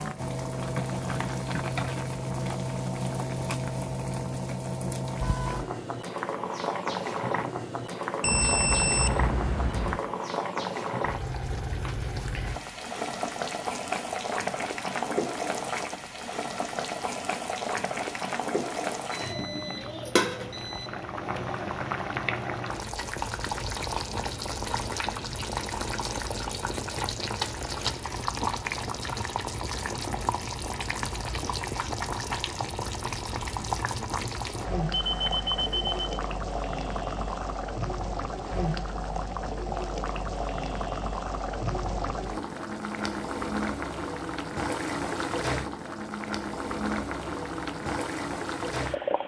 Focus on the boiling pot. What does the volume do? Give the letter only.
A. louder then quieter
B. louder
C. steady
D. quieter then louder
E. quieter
C.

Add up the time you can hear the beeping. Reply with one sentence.
You can hear the beeping for 5 seconds altogether.